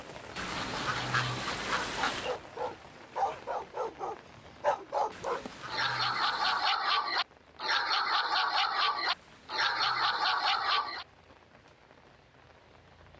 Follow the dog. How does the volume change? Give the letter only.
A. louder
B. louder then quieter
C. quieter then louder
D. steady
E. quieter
A.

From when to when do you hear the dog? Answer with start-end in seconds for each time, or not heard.
0.5-11.1.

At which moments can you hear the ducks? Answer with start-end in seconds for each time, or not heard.
0.3-2.4, 5.1-6.7, 9.1-10.7.